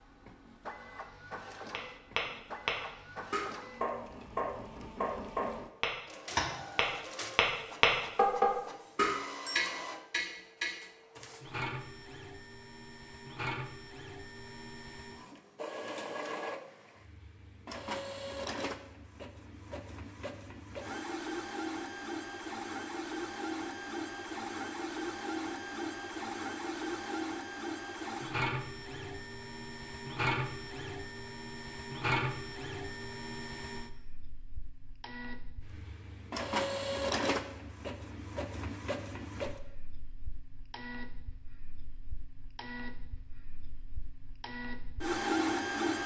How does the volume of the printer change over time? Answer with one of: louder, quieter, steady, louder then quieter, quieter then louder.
louder.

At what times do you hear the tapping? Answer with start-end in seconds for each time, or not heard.
1.7-10.8.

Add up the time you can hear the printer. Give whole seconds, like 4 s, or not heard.
46 s.